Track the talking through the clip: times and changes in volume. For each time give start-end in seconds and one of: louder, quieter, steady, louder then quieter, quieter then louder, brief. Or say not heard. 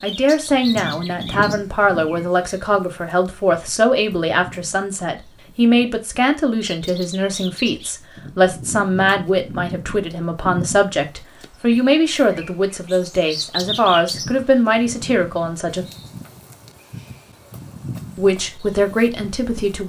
0.0-15.8 steady
18.1-19.8 brief.